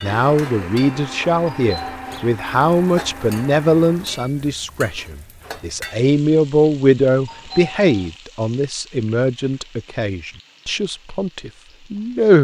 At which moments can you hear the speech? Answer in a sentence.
You can hear the speech from 0.0 to 12.3 s.